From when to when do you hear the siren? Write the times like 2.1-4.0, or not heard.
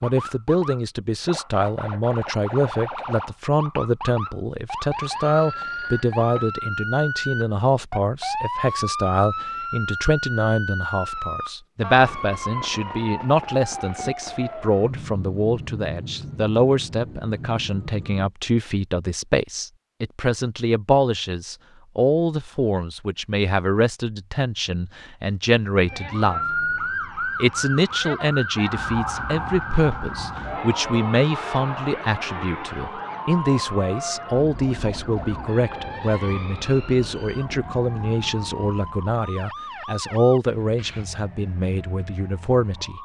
0.0-18.3, 25.9-43.0.